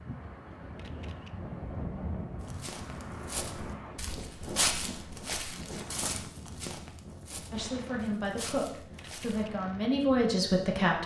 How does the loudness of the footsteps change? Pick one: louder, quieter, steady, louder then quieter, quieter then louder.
louder then quieter.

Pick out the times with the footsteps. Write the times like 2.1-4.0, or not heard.
2.4-9.4.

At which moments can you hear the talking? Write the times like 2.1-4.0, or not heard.
7.5-11.0.